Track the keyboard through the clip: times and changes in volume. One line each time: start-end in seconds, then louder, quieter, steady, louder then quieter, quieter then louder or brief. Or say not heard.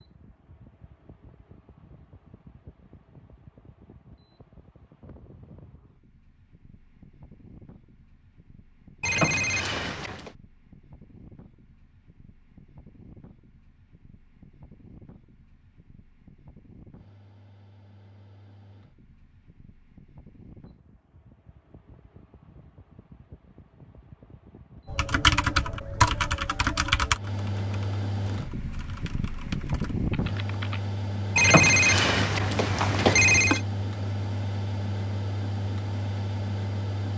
24.9-30.8 quieter then louder.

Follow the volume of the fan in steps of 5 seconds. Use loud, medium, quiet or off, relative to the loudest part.
quiet, quiet, quiet, quiet, quiet, loud, loud, loud.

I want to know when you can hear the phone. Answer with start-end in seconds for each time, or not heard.
9.0-10.3, 31.4-33.6.